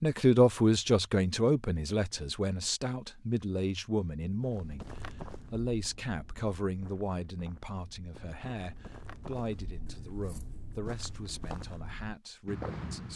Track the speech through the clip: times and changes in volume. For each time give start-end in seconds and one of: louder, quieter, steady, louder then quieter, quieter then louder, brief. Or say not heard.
0.0-13.1 quieter.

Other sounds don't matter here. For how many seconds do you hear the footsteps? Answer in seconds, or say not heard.
9 s.